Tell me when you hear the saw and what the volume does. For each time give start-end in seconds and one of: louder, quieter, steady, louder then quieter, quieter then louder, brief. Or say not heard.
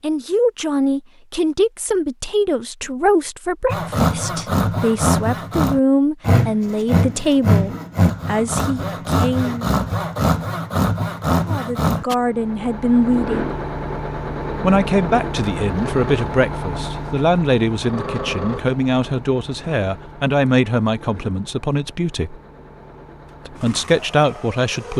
3.7-12.2 steady.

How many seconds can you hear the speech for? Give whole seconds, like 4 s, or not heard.
21 s.